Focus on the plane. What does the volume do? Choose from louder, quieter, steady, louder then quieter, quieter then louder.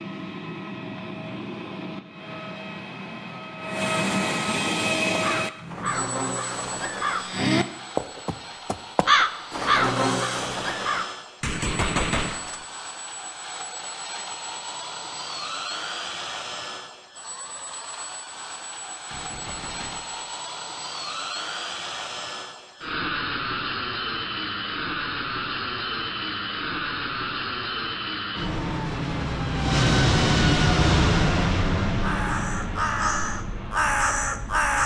quieter then louder.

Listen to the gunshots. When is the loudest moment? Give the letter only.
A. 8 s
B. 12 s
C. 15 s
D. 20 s
B.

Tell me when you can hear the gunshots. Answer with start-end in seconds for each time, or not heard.
11.4-12.7, 19.1-20.3.